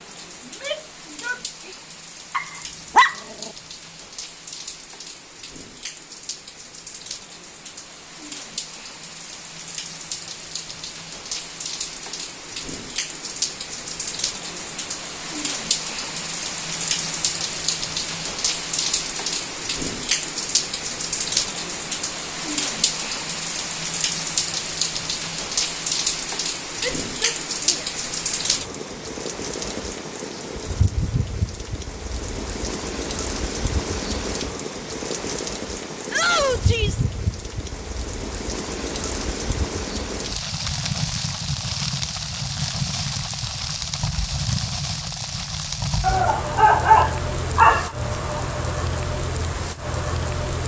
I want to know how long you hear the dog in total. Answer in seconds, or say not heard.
3 s.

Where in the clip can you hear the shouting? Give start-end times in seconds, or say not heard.
0.5-1.8, 26.8-27.9, 36.1-37.0.